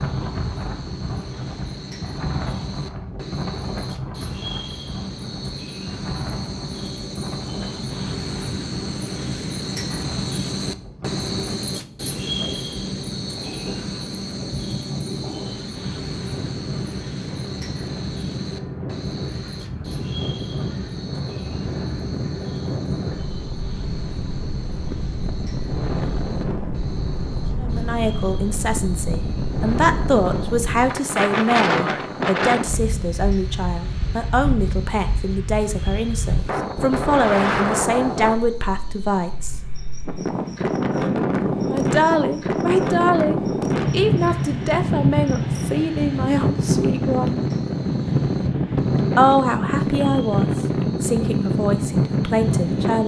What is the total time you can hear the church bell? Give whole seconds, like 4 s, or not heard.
not heard.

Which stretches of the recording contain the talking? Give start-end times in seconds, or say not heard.
27.6-39.5, 41.6-47.4, 49.1-53.0.